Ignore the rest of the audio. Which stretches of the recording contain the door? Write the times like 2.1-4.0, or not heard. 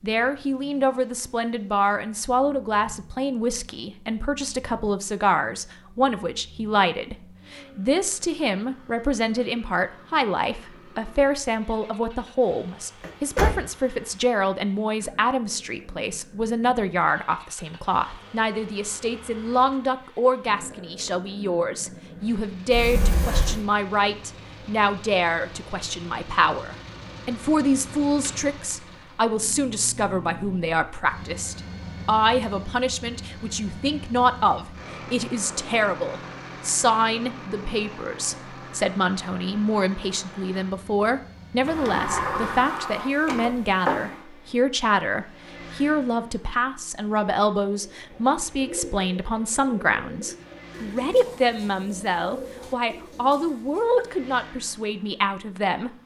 13.0-13.6, 22.7-23.6, 41.6-44.1.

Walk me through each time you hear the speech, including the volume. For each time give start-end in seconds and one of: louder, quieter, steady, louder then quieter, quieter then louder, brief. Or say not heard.
0.0-55.9 steady.